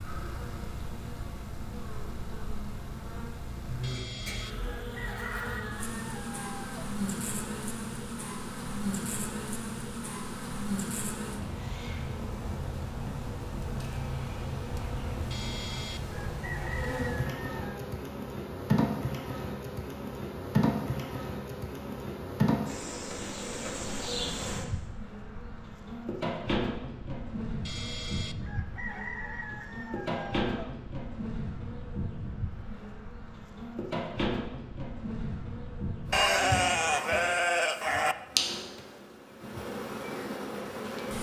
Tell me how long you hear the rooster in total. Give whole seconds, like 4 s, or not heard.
9 s.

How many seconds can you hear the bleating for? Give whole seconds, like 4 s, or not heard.
2 s.